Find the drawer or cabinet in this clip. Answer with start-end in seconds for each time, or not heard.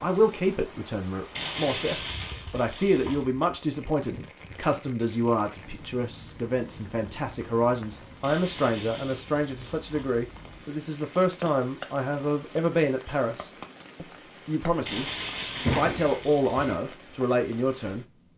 15.6-16.8.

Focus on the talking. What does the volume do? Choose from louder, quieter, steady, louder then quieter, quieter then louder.
steady.